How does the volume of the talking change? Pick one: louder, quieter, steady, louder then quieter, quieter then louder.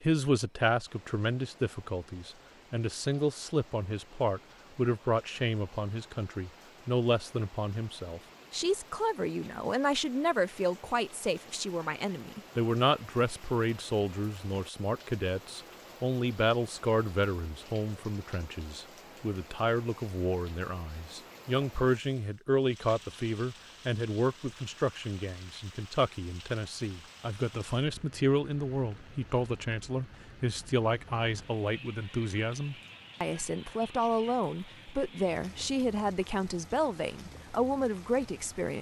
steady.